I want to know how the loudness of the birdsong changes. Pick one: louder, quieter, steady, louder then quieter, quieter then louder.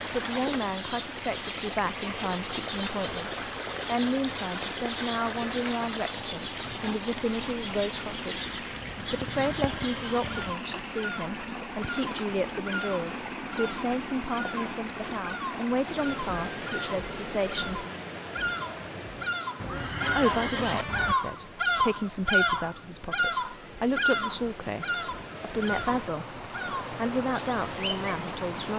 louder.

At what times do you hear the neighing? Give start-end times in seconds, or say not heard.
8.9-10.6, 19.6-21.1.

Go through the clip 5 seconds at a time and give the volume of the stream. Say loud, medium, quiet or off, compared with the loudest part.
loud, loud, loud, loud, medium, loud.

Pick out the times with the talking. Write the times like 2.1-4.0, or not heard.
0.1-17.9, 20.1-28.7.